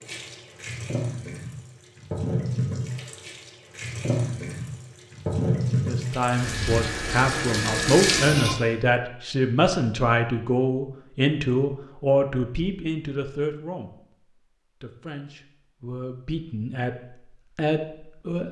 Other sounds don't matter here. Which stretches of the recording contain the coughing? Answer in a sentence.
The coughing can't be heard in this clip.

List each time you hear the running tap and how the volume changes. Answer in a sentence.
The running tap can be heard from 0.0 to 8.6 s, getting louder.